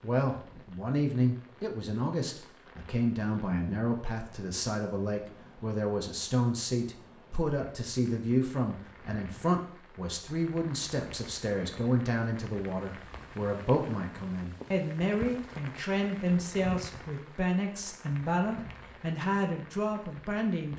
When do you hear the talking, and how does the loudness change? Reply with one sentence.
The talking can be heard from 0.0 to 20.7 s, at a steady volume.